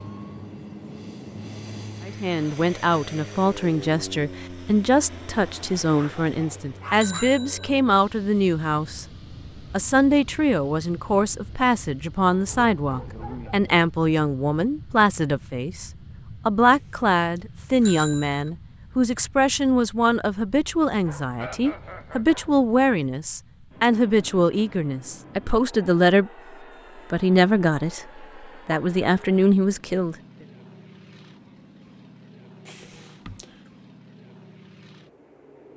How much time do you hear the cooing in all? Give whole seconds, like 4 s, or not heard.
not heard.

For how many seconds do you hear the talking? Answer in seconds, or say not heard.
27 s.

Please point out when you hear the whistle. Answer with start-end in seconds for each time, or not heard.
not heard.